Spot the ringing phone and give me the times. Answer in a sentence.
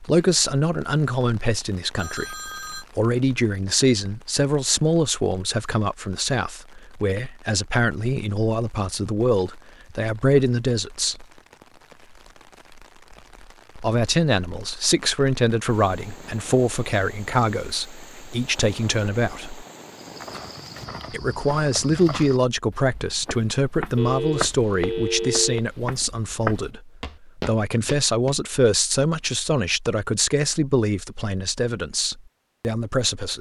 The ringing phone can be heard from 1.9 to 2.9 s and from 23.9 to 25.6 s.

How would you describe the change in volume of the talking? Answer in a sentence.
The volume of the talking stays about the same.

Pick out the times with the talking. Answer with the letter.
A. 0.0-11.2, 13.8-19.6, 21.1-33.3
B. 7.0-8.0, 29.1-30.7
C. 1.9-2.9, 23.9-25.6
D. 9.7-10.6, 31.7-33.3
A.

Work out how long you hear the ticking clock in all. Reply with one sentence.
The ticking clock can't be heard in this clip.